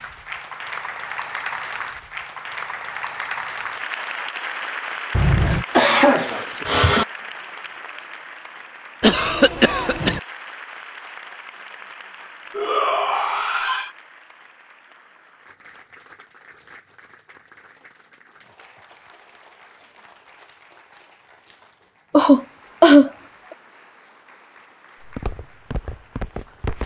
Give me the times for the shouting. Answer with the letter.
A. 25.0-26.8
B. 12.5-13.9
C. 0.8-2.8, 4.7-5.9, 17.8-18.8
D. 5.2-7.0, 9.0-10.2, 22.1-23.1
B.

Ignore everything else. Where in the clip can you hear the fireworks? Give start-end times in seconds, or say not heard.
not heard.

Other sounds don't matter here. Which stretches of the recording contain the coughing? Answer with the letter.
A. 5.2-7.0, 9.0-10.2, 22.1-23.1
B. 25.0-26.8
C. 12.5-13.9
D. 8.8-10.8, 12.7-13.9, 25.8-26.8
A.